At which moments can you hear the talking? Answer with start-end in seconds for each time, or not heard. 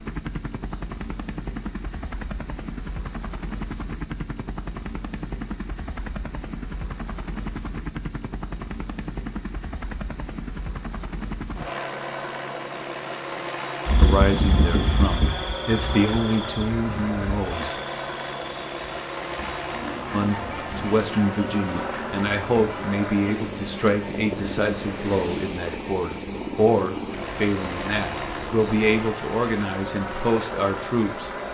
13.9-17.8, 20.1-31.3.